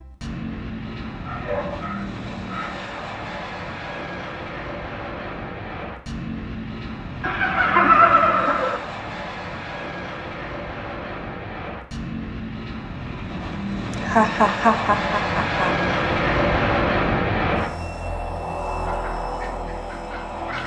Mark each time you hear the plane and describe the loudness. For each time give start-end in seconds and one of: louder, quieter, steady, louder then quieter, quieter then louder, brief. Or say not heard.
0.0-20.6 louder.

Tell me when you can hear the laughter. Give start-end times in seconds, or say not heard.
7.2-8.8, 14.0-15.7.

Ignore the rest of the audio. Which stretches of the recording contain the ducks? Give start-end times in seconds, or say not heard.
18.9-20.6.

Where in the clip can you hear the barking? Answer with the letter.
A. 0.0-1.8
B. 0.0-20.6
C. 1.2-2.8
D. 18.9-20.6
C.